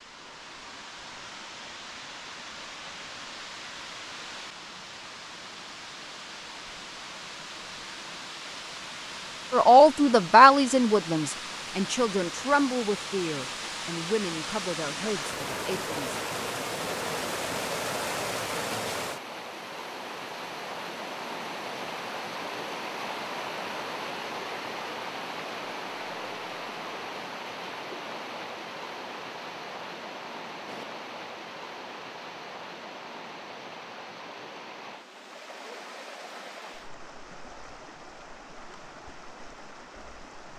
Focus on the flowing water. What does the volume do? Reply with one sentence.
The volume of the flowing water goes up, then down.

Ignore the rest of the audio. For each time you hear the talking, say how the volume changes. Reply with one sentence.
You can hear the talking from 9.5 to 16.1 s, getting quieter.